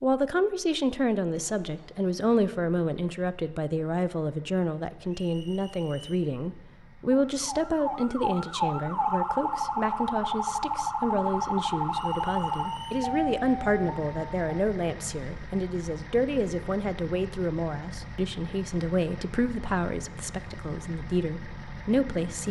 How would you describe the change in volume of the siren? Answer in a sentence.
The volume of the siren stays about the same.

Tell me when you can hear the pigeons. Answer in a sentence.
The pigeons can't be heard in this clip.